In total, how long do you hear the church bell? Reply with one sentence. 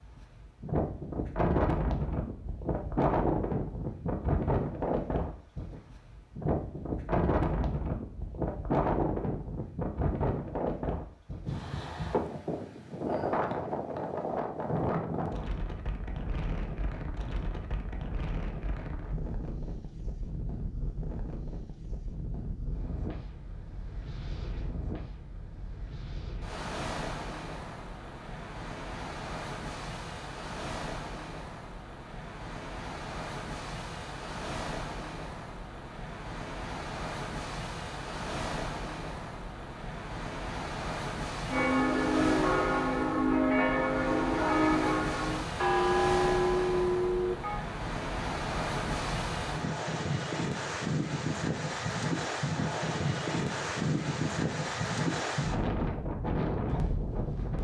The church bell can be heard for 6 seconds in total.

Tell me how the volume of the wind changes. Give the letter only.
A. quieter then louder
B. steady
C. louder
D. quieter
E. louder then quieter
A.